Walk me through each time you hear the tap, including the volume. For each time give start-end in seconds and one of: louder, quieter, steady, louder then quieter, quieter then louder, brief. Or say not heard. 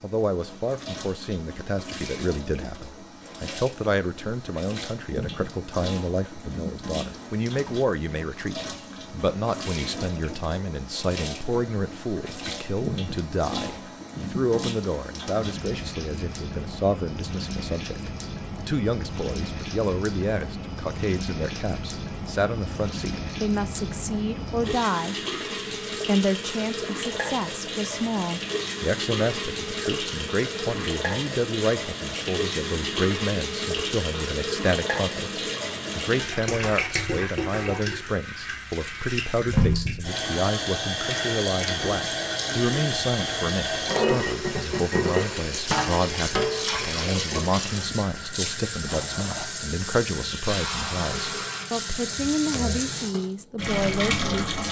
0.0-54.6 louder.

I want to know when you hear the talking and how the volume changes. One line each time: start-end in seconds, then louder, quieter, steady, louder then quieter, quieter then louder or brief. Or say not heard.
0.0-25.1 steady
26.1-54.6 steady.